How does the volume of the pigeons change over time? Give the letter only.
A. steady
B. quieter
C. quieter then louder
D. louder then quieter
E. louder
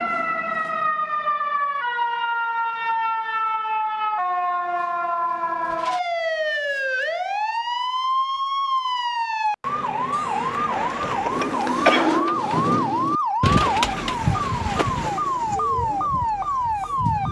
B.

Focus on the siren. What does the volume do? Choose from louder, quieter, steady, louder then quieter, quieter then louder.
steady.